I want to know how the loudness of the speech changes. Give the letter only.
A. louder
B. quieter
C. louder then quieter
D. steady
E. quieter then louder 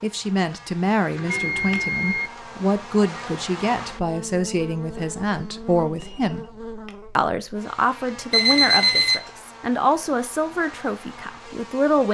D.